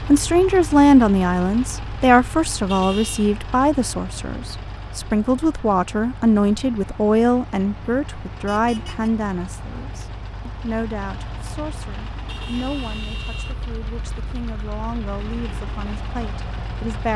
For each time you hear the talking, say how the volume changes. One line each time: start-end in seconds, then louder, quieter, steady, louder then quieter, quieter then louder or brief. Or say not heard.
0.1-17.1 quieter.